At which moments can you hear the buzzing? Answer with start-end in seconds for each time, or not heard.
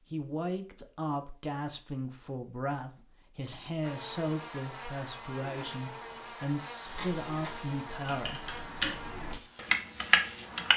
3.8-10.7.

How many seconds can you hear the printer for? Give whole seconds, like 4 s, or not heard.
not heard.